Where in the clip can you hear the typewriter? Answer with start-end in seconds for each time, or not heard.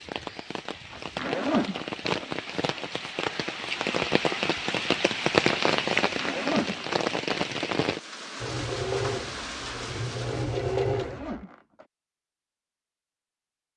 not heard.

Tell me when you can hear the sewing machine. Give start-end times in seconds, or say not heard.
8.4-11.4.